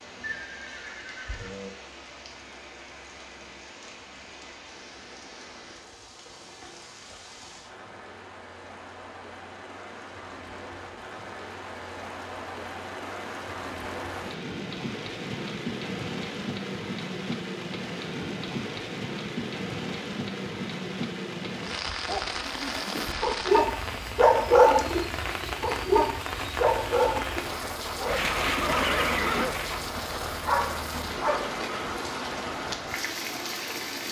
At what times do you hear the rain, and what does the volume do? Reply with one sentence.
You can hear the rain from 0.0 to 34.0 s, getting louder.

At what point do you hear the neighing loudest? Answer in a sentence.
The volume of the neighing peaks at 29 seconds.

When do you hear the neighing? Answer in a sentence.
You can hear the neighing from 0.2 to 1.8 s and from 28.1 to 29.9 s.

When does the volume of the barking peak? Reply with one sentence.
The loudest moment of the barking is at 25 seconds.